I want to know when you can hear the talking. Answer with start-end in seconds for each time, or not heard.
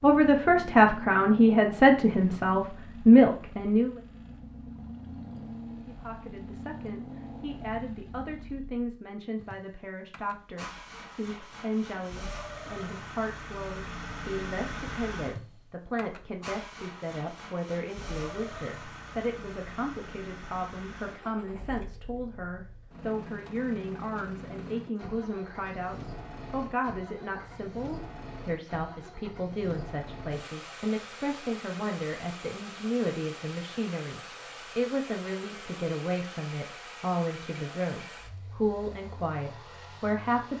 0.0-4.0, 5.8-40.5.